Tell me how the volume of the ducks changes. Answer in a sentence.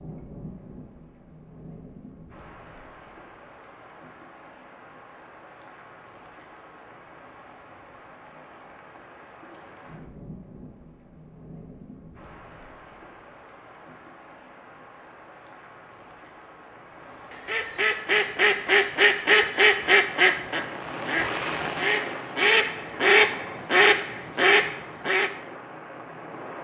The volume of the ducks goes down, then up.